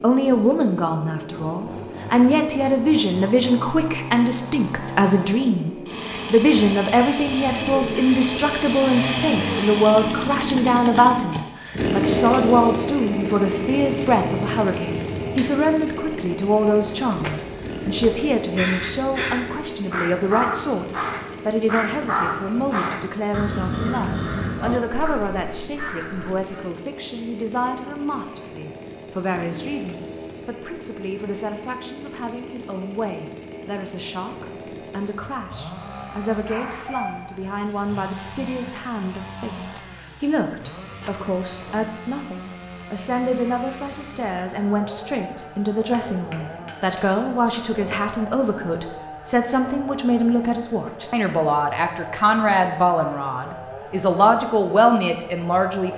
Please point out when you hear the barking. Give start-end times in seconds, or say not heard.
36.5-38.0.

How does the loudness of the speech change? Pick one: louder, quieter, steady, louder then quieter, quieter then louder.
quieter then louder.